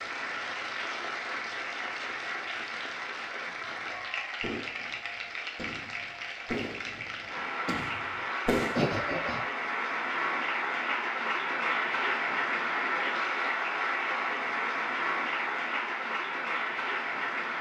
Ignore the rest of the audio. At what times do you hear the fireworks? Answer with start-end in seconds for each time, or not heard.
3.5-8.9.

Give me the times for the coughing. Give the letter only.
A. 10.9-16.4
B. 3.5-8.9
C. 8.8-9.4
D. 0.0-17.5
C.